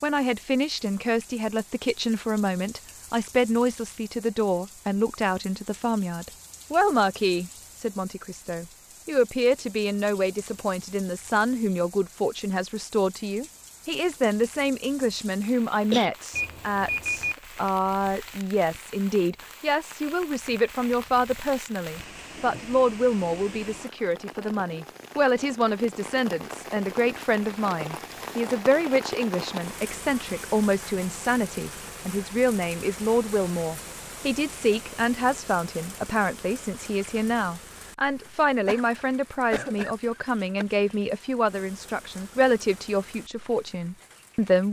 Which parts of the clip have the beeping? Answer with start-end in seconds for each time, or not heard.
16.3-17.4.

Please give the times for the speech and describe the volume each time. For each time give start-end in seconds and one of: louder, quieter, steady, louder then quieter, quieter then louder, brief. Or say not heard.
0.0-44.6 steady.